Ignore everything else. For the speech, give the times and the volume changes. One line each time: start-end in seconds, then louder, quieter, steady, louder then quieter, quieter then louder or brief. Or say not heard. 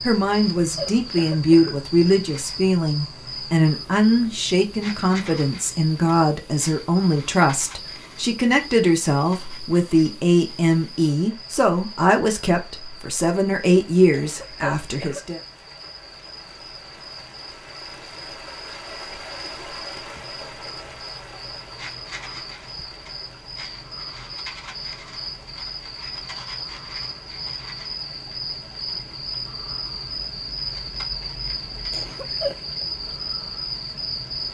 0.0-15.4 steady.